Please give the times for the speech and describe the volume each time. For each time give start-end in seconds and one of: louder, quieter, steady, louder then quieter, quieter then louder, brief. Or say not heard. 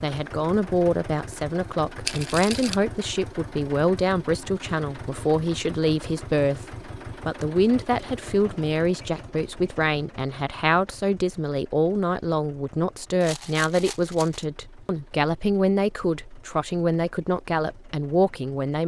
0.0-18.8 steady.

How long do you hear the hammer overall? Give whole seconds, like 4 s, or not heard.
not heard.